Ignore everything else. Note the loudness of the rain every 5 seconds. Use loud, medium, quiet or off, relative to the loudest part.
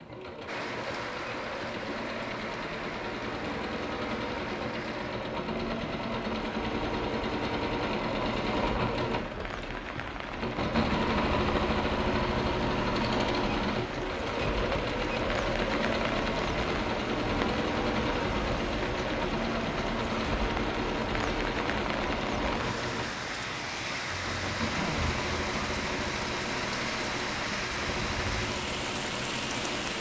medium, medium, loud, loud, loud, loud.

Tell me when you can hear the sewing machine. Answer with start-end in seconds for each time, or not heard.
0.0-29.9.